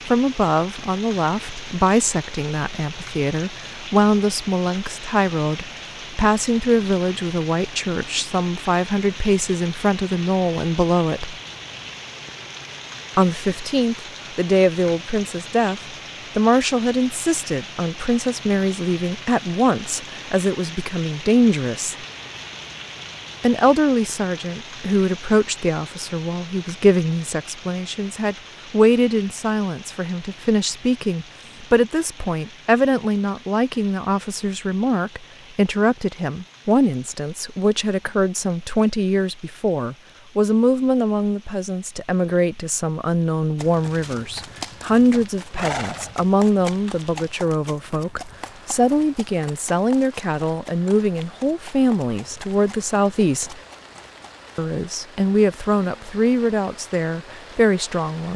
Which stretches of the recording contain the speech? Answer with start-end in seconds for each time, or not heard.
0.1-11.3, 13.2-21.9, 23.4-53.6, 54.5-58.3.